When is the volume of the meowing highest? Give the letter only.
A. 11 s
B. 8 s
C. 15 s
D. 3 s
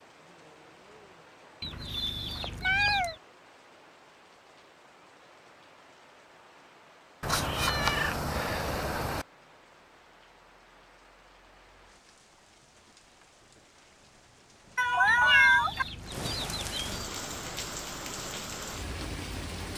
C.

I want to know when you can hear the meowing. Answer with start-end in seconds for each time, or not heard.
2.4-3.1, 7.2-9.2, 14.8-15.8.